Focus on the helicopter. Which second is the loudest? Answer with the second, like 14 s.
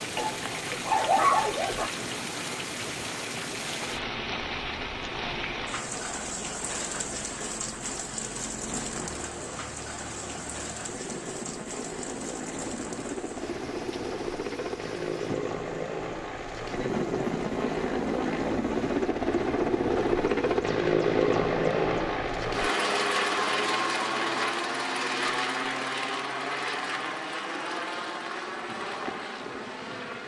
21 s.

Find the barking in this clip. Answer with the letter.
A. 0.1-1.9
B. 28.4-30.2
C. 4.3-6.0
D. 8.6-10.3
A.